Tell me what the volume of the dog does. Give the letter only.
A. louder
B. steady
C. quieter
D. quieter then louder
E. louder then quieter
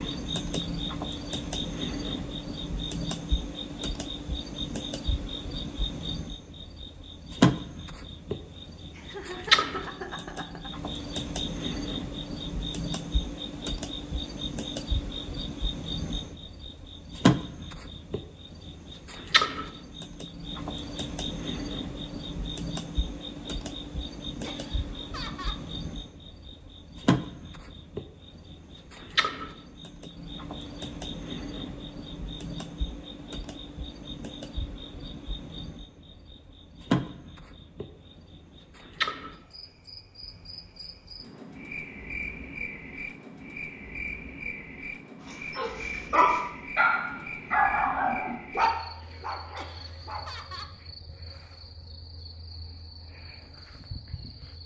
C.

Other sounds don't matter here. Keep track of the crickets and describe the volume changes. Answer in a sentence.
The volume of the crickets goes down.